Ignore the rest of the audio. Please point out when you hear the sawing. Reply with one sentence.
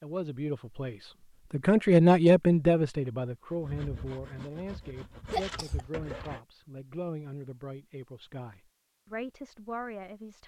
You can hear the sawing from 3.5 to 6.4 s.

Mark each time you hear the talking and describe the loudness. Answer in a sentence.
You can hear the talking from 0.0 to 10.4 s, getting quieter.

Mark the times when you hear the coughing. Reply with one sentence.
You can hear the coughing from 5.3 to 5.8 s.